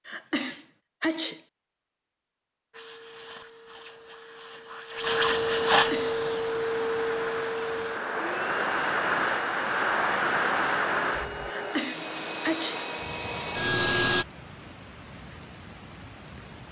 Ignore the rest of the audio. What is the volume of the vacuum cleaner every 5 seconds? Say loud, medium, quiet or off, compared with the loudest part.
quiet, loud, loud, off.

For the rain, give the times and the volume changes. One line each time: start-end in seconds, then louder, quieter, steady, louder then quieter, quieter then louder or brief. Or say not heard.
6.0-16.6 louder then quieter.